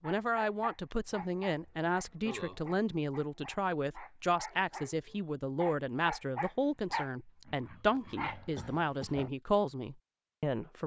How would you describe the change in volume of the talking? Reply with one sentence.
The loudness of the talking stays about the same.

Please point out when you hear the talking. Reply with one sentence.
The talking can be heard from 0.0 to 10.8 s.